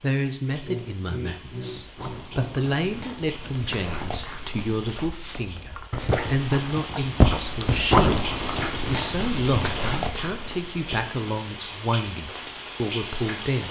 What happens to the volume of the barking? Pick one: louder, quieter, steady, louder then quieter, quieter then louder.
louder then quieter.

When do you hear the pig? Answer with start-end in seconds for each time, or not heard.
0.6-2.6.